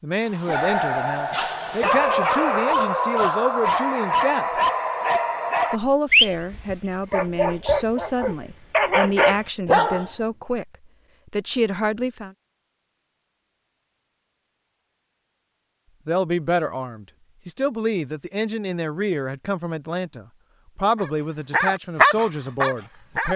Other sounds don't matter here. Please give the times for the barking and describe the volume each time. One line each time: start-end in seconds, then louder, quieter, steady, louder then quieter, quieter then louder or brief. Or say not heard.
0.3-10.1 steady
20.9-23.3 brief.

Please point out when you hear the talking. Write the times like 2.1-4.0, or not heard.
0.0-4.6, 5.7-12.3, 16.1-23.3.